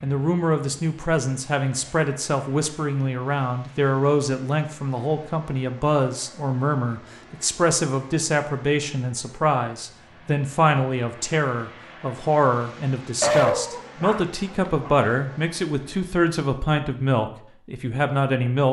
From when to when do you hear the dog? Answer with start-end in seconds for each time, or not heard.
13.2-14.9.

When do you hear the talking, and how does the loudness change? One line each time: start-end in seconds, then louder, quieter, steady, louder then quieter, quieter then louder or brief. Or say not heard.
0.0-18.6 steady.